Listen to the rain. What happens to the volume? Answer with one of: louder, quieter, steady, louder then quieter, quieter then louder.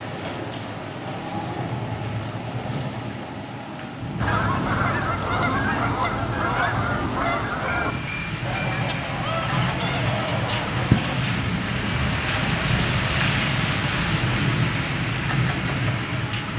louder.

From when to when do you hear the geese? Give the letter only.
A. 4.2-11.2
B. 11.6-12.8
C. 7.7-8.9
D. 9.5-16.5
A.